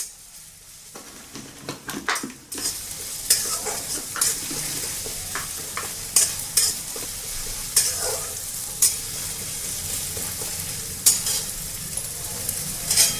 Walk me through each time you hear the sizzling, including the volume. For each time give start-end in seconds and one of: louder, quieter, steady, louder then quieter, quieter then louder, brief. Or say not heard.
0.0-13.1 louder.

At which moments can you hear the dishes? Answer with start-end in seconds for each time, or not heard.
0.9-7.1.